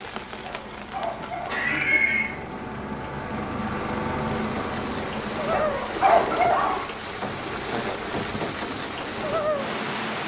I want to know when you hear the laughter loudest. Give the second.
2 s.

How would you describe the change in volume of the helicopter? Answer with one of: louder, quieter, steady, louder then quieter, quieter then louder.
louder then quieter.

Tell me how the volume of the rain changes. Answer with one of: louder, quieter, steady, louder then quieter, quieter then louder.
louder.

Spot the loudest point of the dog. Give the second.
6 s.